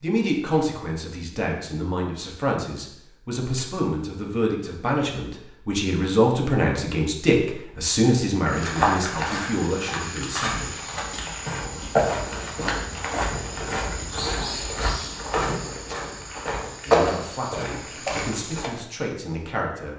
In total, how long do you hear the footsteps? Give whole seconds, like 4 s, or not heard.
10 s.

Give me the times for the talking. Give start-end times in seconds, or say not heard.
0.0-10.8, 16.9-19.9.